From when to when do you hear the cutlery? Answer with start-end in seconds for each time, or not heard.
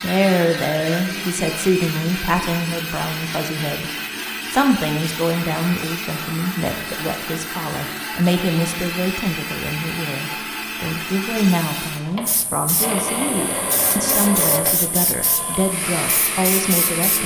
not heard.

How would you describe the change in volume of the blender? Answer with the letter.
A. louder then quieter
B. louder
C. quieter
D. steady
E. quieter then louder
D.